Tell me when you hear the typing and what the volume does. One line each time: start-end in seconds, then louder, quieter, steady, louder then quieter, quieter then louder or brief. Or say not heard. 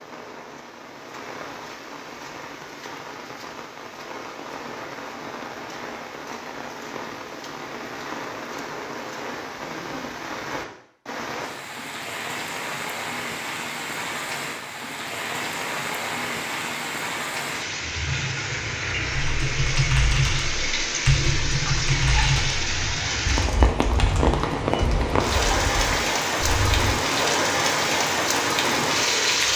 19.1-26.9 quieter.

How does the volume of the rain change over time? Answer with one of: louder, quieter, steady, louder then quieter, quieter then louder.
louder.